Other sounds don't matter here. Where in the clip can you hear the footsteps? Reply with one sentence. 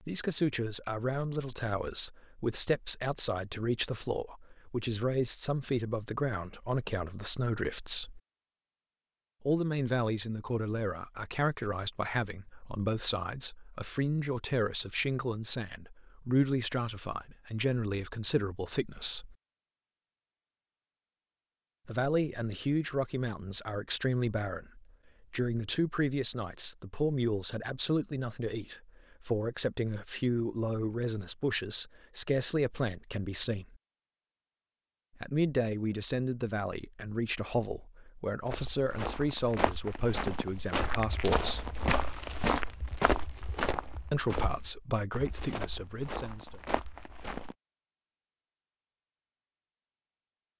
The footsteps can be heard from 38.5 to 47.5 s.